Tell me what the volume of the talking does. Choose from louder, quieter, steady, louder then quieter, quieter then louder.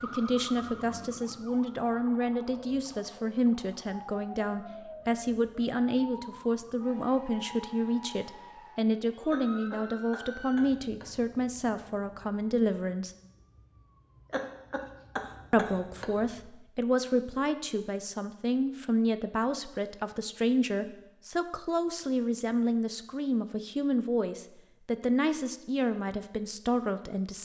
steady.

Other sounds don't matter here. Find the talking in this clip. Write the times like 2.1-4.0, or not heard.
0.0-13.2, 15.5-27.4.